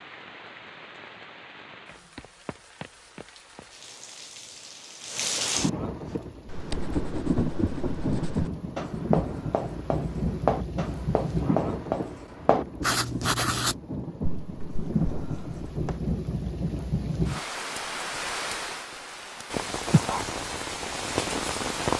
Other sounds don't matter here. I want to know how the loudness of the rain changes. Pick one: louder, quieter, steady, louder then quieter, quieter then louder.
louder.